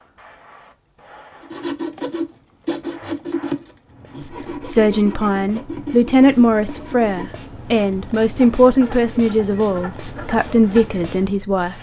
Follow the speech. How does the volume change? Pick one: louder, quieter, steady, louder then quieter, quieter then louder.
steady.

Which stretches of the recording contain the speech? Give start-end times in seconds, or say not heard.
4.2-11.7.